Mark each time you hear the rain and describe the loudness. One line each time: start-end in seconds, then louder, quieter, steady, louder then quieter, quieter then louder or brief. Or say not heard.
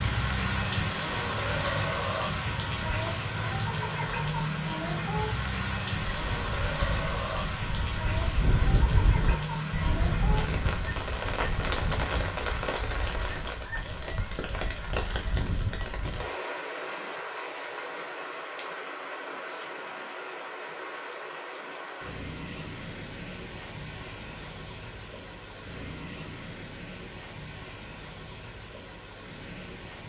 0.0-30.0 quieter.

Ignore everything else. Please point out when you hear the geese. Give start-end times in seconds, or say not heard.
6.2-16.3.